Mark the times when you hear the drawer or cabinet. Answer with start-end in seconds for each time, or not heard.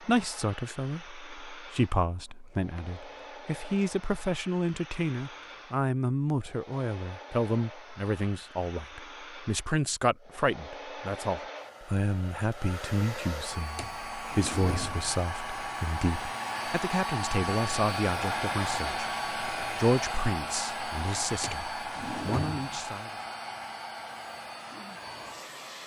2.0-2.9, 13.8-15.2, 21.4-22.9.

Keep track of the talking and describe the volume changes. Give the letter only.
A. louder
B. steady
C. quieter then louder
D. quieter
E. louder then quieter
B.